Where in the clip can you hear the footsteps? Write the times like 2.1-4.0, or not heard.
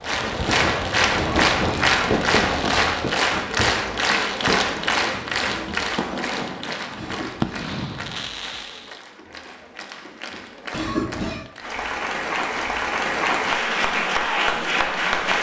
not heard.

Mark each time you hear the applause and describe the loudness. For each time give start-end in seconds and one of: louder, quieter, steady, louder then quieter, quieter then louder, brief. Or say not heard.
0.0-15.3 quieter then louder.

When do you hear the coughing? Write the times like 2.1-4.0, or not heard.
1.1-2.2, 7.0-7.7, 10.7-11.4.